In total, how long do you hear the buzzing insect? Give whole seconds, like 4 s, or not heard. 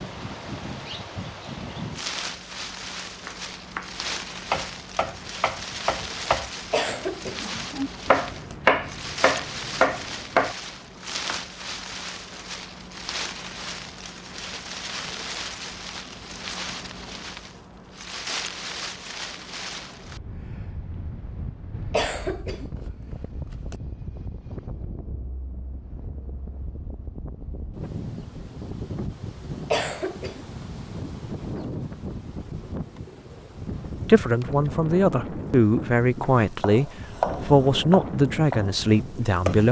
not heard.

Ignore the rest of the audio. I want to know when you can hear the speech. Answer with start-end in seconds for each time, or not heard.
34.0-39.6.